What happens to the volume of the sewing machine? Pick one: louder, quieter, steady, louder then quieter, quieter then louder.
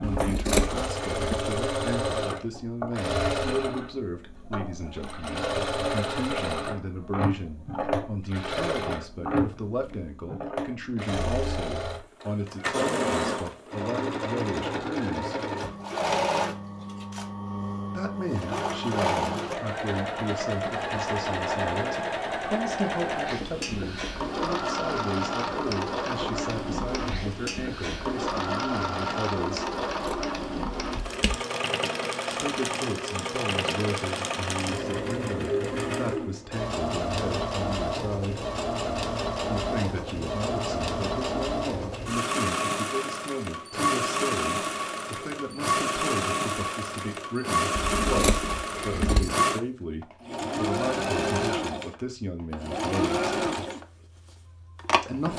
steady.